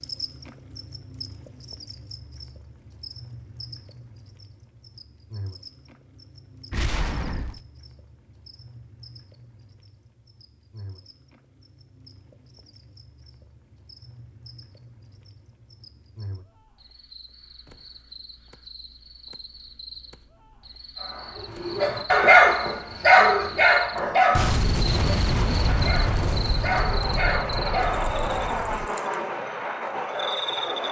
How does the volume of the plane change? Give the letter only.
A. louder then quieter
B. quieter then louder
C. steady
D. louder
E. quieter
D.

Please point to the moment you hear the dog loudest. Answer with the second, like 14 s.
22 s.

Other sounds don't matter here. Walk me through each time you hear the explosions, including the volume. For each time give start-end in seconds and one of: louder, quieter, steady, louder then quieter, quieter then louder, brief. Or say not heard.
6.7-7.6 brief
24.4-28.9 quieter.